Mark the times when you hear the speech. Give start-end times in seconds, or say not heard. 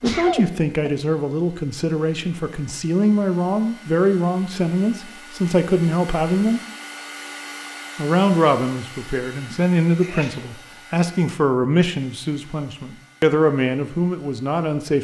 0.0-6.6, 8.0-14.9.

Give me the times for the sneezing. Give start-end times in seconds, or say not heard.
0.0-0.9, 9.5-10.5.